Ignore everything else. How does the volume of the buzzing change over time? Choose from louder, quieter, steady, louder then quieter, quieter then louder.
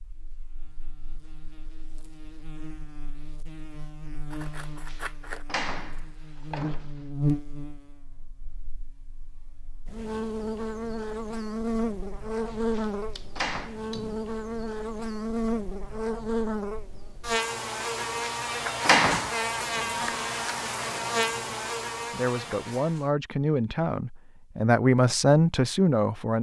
louder.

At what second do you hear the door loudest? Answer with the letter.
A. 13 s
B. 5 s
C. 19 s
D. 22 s
C.